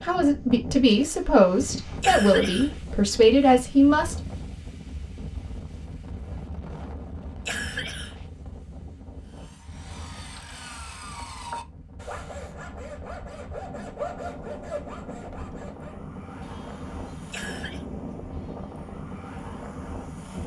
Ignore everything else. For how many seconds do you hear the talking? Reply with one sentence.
The talking can be heard for 4 seconds in total.